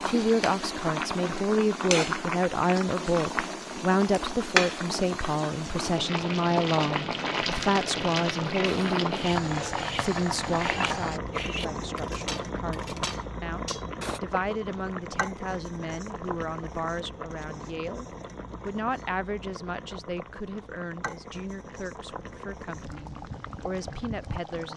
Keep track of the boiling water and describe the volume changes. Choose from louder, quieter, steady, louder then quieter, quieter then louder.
quieter.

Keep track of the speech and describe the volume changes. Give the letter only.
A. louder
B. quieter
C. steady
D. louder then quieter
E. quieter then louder
B.